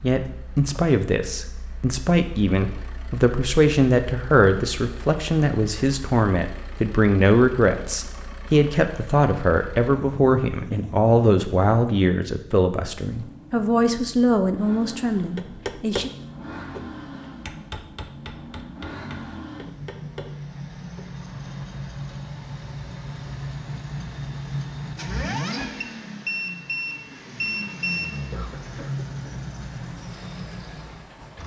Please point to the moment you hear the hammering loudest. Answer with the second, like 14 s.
16 s.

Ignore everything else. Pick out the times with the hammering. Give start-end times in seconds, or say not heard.
15.3-16.9, 17.4-21.1.